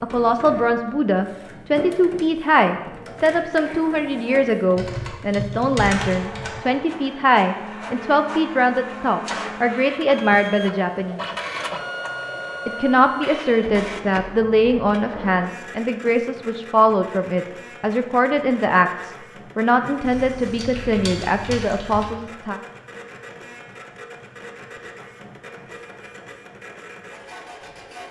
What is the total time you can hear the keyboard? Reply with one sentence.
The keyboard can be heard for 4 seconds in total.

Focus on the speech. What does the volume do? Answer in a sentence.
The volume of the speech stays about the same.